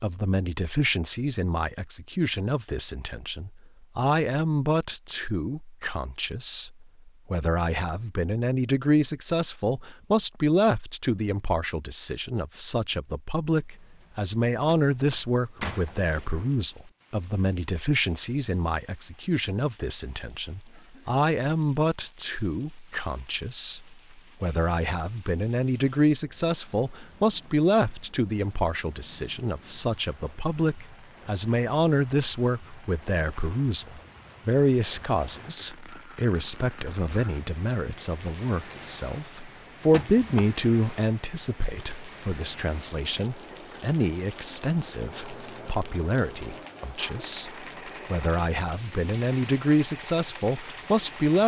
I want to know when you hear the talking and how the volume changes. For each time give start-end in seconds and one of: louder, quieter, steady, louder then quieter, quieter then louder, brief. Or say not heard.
0.0-51.4 steady.